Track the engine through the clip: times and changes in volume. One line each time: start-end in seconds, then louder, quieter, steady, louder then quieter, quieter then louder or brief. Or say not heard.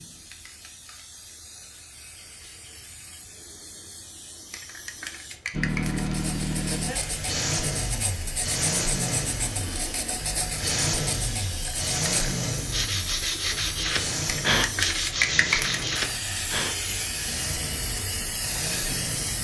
5.5-19.3 quieter.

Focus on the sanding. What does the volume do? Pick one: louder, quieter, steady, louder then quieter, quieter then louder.
louder.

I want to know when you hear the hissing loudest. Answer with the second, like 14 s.
15 s.